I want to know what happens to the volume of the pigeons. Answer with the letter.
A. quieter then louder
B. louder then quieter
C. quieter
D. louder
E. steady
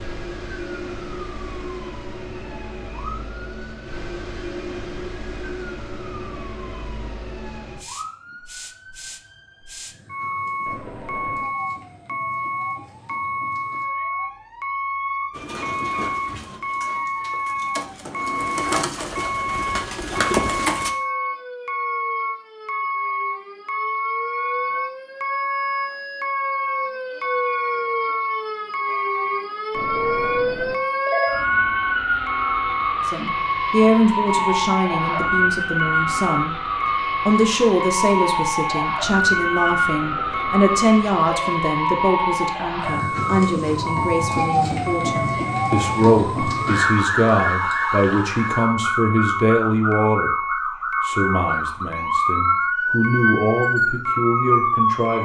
A.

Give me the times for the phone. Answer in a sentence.
You can hear the phone from 10.7 to 11.5 s, from 29.7 to 31.4 s and from 40.0 to 41.6 s.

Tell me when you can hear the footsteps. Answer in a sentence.
You can't hear the footsteps here.